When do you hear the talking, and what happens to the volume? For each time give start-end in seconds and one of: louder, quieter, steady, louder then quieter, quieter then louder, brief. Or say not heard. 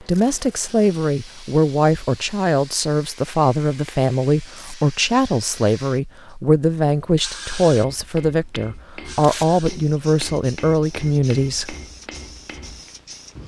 0.0-11.8 steady.